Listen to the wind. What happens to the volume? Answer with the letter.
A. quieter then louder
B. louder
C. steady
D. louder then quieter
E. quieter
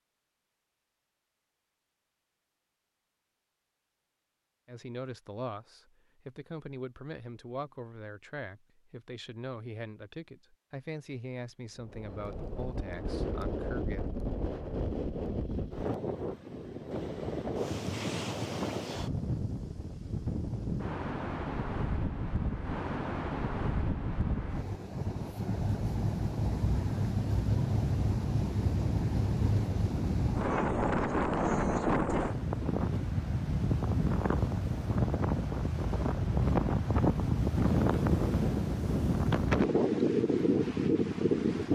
B.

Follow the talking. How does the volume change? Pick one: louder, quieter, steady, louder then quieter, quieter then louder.
steady.